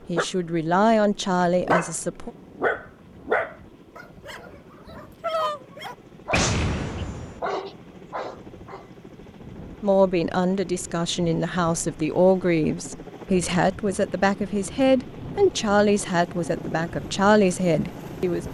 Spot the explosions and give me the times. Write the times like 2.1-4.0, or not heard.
6.3-7.4.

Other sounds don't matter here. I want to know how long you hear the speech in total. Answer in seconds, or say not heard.
11 s.